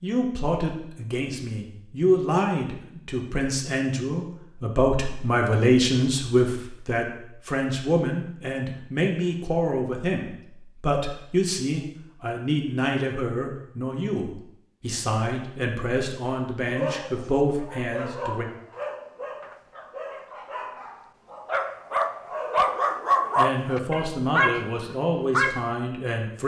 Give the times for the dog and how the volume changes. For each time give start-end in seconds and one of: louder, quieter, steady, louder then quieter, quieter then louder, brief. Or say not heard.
16.6-25.7 louder.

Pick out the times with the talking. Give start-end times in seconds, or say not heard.
0.0-18.4, 23.4-26.4.